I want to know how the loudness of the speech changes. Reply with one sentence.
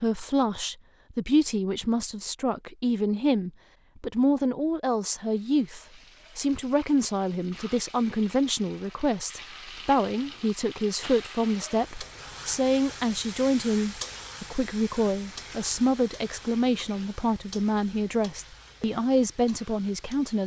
The volume of the speech stays about the same.